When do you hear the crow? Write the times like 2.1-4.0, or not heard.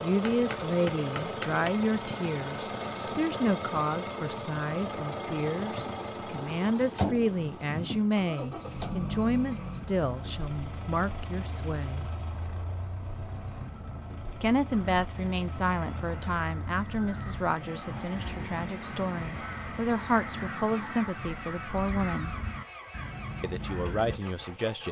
14.7-24.2.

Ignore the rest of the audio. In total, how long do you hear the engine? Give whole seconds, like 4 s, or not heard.
25 s.